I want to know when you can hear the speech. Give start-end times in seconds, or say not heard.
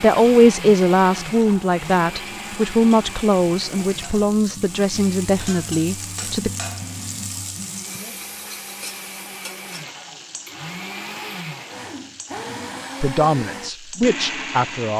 0.0-6.5, 13.0-14.9.